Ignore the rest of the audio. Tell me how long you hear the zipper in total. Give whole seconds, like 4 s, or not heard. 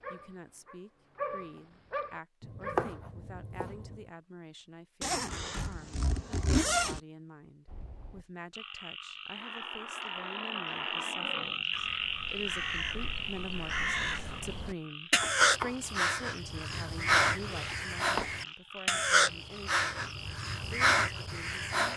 4 s.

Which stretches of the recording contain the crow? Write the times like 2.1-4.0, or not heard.
11.7-21.9.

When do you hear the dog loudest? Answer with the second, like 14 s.
1 s.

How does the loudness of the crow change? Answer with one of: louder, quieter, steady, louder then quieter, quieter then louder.
louder.